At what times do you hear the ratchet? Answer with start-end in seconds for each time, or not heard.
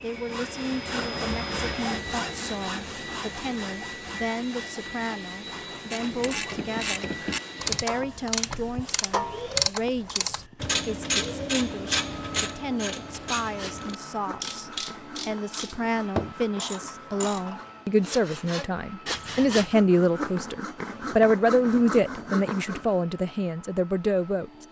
5.9-17.7.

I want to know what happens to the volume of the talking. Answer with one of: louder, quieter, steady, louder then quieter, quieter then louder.
louder.